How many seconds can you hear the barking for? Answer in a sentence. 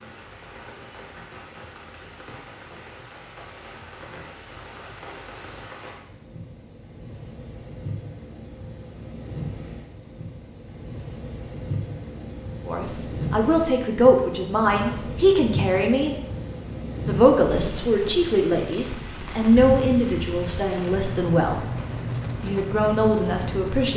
You can't hear the barking here.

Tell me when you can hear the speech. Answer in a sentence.
You can hear the speech from 12.7 to 16.1 s, from 17.1 to 21.6 s and from 22.4 to 23.9 s.